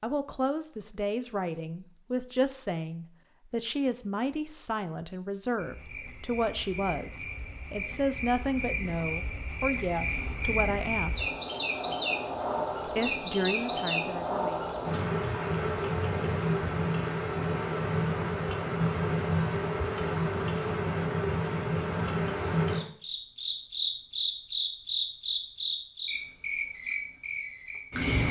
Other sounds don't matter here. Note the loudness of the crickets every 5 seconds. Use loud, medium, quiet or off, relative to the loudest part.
medium, medium, loud, loud, loud, loud.